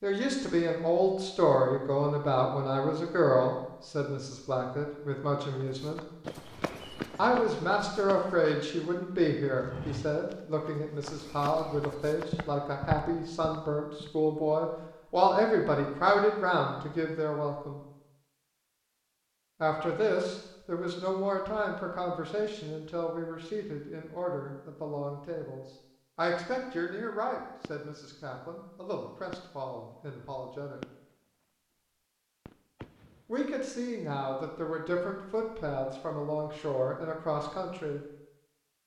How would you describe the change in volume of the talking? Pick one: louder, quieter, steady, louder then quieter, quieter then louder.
quieter.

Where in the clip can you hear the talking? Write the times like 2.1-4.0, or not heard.
0.0-6.0, 7.2-17.8, 19.6-30.8, 33.2-38.0.